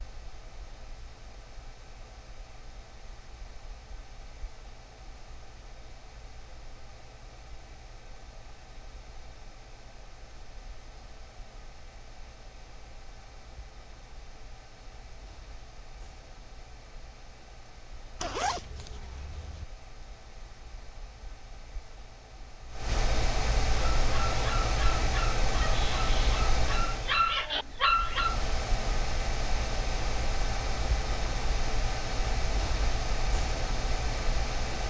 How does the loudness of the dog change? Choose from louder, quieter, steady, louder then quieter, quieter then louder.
louder.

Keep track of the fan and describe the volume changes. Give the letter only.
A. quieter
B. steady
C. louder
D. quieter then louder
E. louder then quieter
C.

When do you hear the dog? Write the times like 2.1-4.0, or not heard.
24.0-28.5.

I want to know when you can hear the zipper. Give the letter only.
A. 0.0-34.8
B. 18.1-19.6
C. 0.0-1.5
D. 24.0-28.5
B.